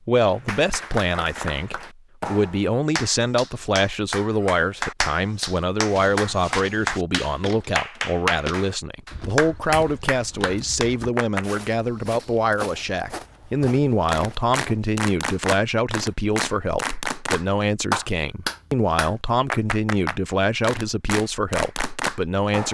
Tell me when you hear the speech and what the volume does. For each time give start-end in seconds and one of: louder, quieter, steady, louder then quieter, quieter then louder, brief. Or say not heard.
0.1-22.6 steady.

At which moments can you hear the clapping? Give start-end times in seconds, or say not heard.
0.2-11.6, 14.1-22.6.